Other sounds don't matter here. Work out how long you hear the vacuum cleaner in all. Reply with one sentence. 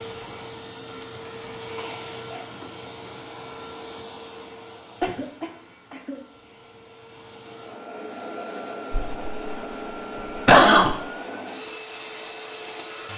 The vacuum cleaner can be heard for 13 seconds in total.